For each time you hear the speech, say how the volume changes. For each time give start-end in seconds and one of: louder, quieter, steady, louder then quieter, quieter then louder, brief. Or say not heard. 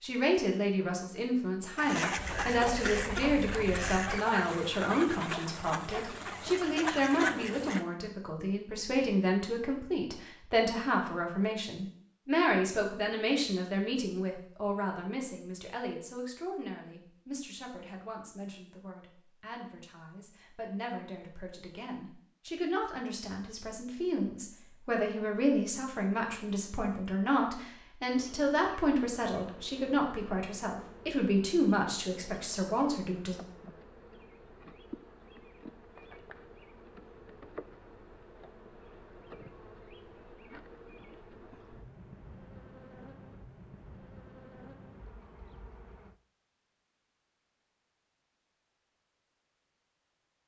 0.0-33.4 quieter then louder.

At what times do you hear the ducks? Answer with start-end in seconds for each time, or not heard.
1.8-7.8.